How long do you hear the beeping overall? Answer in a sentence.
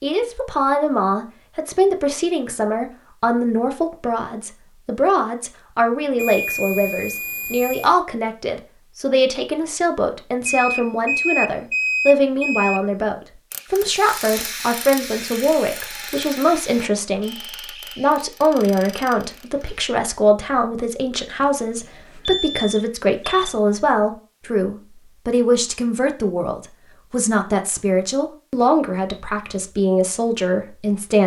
The beeping can be heard for 6 seconds in total.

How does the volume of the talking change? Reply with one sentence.
The loudness of the talking stays about the same.